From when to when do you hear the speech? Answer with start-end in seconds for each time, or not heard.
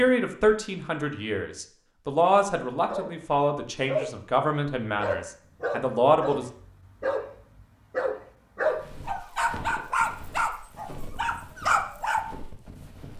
0.0-6.5.